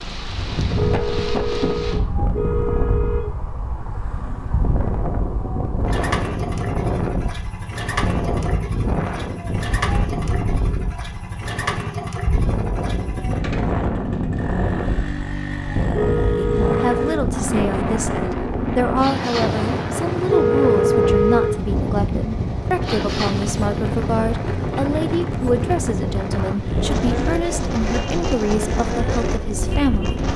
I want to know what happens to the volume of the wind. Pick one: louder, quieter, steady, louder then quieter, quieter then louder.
steady.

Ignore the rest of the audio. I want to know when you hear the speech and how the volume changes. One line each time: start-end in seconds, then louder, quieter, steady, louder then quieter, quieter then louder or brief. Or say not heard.
16.4-30.3 steady.